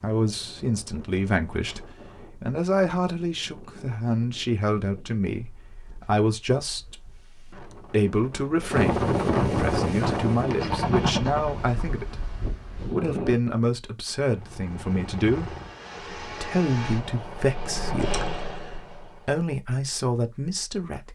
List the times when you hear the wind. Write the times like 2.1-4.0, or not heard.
0.1-13.6.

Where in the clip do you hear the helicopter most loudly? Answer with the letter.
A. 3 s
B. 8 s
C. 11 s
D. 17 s
C.